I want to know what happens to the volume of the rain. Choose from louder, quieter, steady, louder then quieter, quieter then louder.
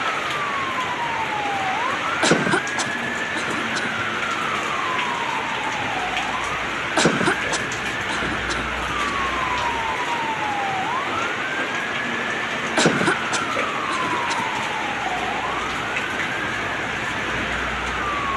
steady.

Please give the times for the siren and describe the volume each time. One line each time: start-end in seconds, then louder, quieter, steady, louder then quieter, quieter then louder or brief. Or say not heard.
0.1-18.3 steady.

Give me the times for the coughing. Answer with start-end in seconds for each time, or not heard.
2.2-3.9, 7.0-9.2, 12.8-14.4.